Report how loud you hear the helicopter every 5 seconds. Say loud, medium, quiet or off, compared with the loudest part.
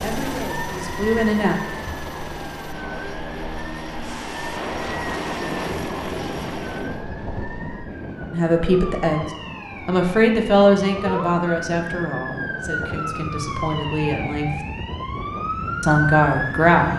loud, loud, off, off.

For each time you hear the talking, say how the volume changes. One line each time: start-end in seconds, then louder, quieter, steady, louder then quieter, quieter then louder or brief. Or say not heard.
0.0-1.6 brief
8.3-9.2 brief
9.8-14.6 quieter then louder
15.8-16.9 brief.